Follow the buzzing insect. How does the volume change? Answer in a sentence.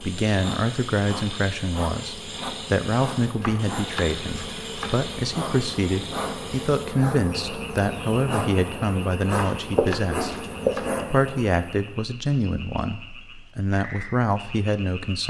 The loudness of the buzzing insect goes up.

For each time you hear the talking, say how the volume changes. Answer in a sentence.
You can hear the talking from 0.0 to 15.2 s, at a steady volume.